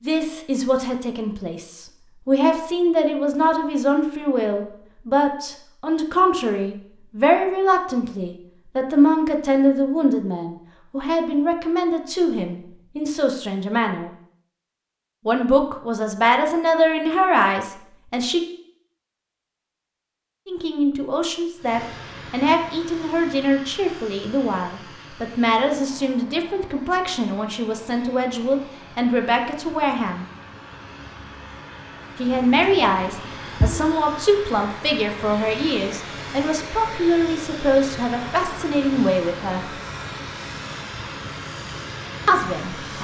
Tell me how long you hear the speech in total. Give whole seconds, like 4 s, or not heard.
35 s.